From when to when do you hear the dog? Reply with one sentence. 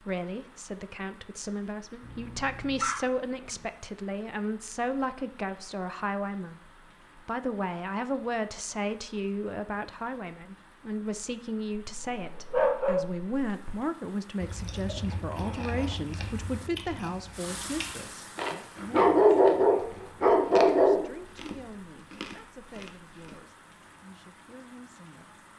You can hear the dog from 2.0 to 3.0 s, from 11.9 to 13.8 s and from 18.8 to 21.1 s.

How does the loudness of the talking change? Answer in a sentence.
The loudness of the talking goes down.